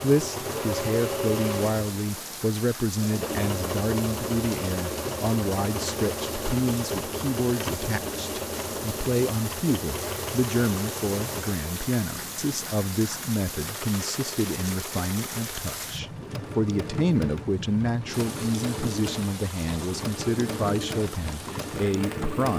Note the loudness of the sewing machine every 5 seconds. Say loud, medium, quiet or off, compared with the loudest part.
loud, loud, medium, medium, loud.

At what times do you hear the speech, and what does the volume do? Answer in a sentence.
You can hear the speech from 0.0 to 22.5 s, at a steady volume.